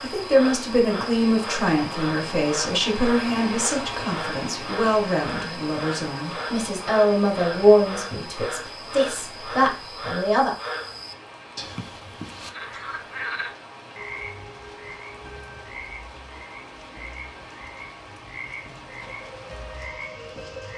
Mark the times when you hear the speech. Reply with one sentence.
The speech can be heard from 0.0 to 10.6 s.